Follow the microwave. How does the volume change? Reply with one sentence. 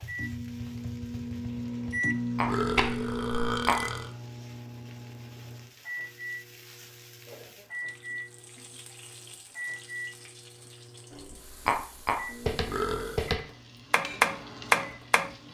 The loudness of the microwave goes down.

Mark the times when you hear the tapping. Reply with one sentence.
You can hear the tapping from 0.0 to 3.8 s and from 11.7 to 15.3 s.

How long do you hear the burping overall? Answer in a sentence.
The burping can be heard for 2 seconds in total.